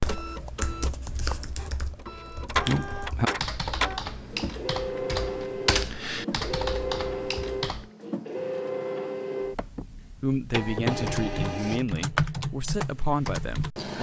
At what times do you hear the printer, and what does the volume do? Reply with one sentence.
You can hear the printer from 0.0 to 11.8 s, at a steady volume.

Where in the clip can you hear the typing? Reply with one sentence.
You can hear the typing from 0.0 to 7.9 s and from 10.8 to 13.9 s.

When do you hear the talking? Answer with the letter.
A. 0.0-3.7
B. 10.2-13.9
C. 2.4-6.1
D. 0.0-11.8
B.